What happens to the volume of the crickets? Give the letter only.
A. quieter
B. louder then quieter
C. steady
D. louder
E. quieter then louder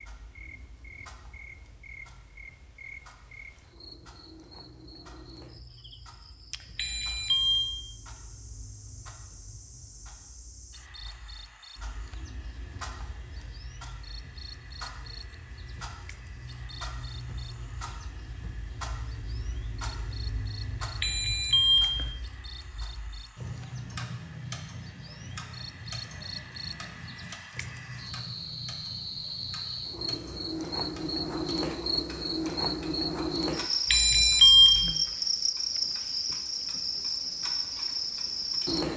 D.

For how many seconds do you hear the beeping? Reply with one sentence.
You can hear the beeping for 3 seconds altogether.